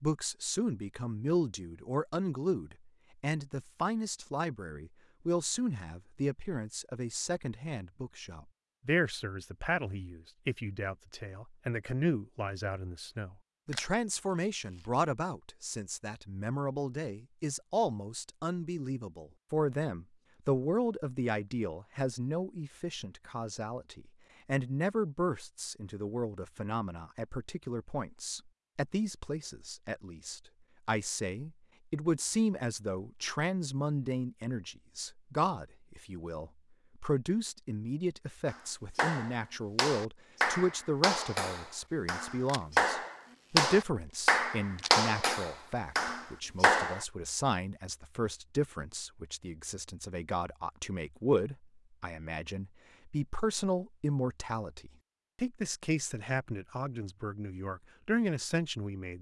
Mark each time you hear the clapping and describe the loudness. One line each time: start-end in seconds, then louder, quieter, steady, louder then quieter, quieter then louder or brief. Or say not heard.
38.5-47.0 louder then quieter.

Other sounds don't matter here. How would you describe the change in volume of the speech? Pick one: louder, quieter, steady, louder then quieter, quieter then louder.
steady.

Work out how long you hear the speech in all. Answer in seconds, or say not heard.
59 s.